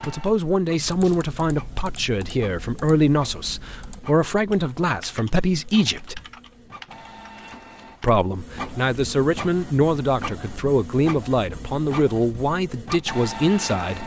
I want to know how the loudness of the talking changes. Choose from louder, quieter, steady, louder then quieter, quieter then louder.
steady.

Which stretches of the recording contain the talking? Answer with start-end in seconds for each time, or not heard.
0.1-6.2, 8.0-14.0.